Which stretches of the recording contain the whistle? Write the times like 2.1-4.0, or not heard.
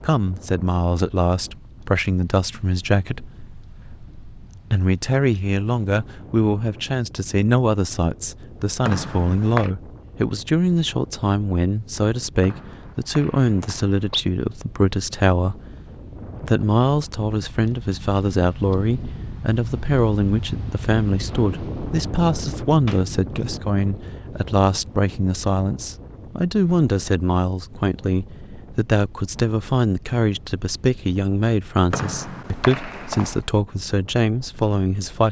8.8-9.7, 12.4-14.2, 31.9-33.4.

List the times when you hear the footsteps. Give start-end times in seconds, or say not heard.
not heard.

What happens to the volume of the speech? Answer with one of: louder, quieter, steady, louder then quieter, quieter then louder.
steady.